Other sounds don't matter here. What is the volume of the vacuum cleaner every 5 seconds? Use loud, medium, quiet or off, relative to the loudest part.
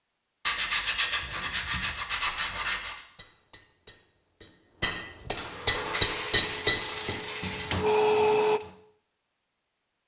off, loud.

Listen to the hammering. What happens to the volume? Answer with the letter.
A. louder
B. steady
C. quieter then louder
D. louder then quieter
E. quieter
D.